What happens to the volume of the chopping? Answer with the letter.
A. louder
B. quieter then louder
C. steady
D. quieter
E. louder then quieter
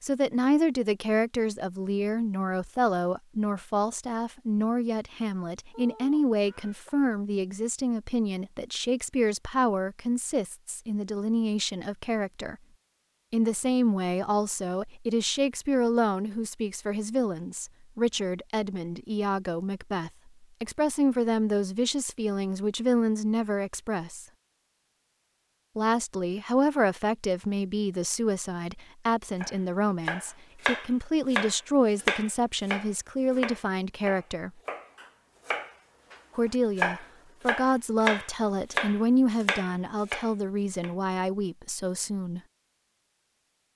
B.